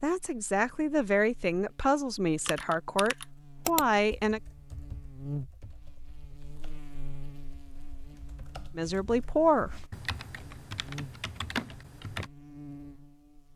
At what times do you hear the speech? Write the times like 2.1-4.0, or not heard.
0.0-4.4, 8.8-9.8.